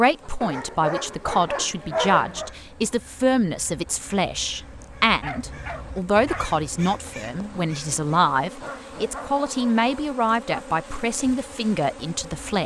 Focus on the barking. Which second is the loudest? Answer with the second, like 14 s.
2 s.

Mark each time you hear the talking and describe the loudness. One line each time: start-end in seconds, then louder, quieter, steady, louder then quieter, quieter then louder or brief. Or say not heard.
0.0-12.6 steady.